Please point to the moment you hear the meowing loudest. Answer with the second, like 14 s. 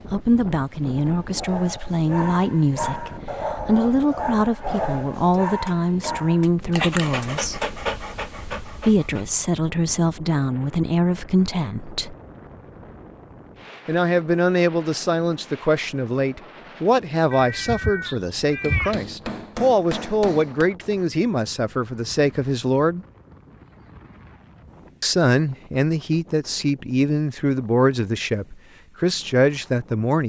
19 s.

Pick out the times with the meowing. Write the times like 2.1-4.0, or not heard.
17.3-19.0.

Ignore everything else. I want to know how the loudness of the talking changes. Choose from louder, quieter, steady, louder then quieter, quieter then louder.
steady.